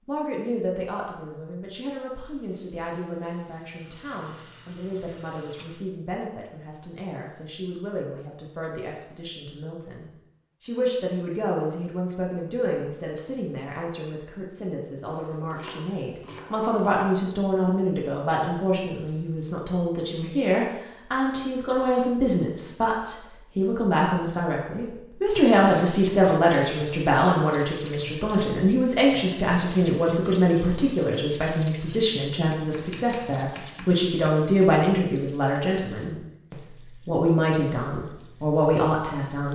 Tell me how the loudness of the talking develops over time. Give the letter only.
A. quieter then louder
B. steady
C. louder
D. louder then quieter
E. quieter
C.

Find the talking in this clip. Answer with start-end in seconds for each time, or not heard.
0.1-39.5.